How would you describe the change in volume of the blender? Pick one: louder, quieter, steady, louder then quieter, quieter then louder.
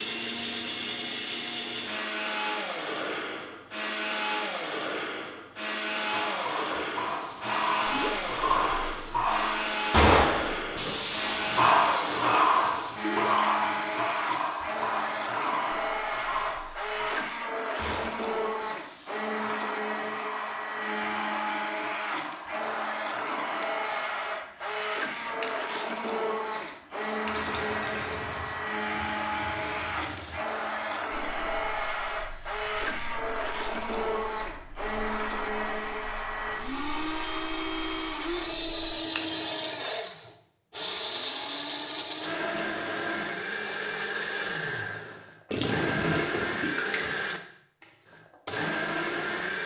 steady.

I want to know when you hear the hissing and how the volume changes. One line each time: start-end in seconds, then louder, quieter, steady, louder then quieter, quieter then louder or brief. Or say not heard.
6.0-39.6 quieter.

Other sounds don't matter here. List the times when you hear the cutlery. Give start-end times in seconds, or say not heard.
not heard.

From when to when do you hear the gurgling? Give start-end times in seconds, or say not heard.
7.8-8.3, 13.0-13.5, 27.3-28.9, 45.5-47.1.